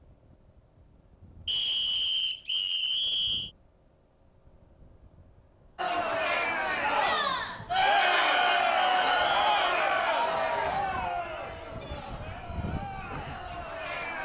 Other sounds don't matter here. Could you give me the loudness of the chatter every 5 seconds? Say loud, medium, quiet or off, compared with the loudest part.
off, loud, medium.